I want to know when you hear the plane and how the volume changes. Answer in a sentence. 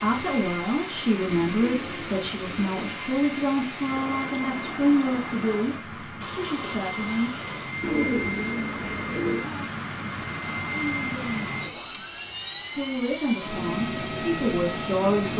You can hear the plane from 0.0 to 15.3 s, getting louder.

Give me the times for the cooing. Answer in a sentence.
You can hear the cooing from 1.2 to 3.0 s and from 7.8 to 9.4 s.